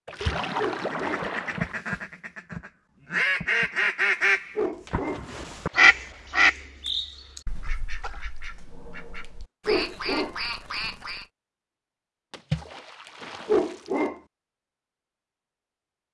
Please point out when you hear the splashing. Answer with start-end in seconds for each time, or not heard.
0.1-1.8, 4.8-6.4, 8.0-8.4, 12.3-14.1.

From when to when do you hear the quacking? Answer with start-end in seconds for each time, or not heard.
0.2-11.2.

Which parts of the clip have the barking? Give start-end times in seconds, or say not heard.
0.6-1.3, 4.5-5.2, 9.7-10.3, 13.4-14.2.